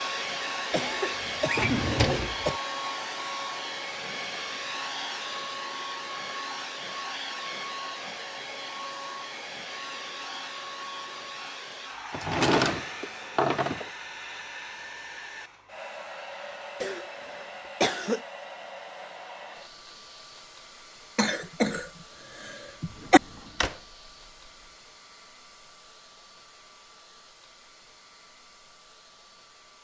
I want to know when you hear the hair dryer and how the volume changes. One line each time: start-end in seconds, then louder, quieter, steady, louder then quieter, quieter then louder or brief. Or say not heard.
0.0-29.8 quieter.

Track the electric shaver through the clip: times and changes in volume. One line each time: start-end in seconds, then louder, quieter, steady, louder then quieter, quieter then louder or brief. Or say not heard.
not heard.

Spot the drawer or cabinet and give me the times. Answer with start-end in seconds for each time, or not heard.
1.4-2.4, 12.1-13.9, 22.9-23.8.